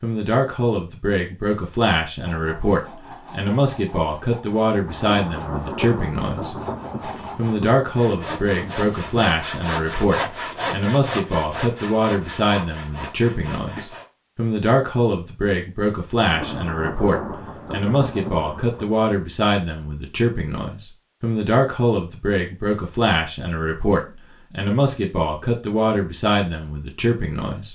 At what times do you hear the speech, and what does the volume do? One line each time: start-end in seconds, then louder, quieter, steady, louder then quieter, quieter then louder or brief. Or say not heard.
0.0-6.5 steady
7.3-27.7 steady.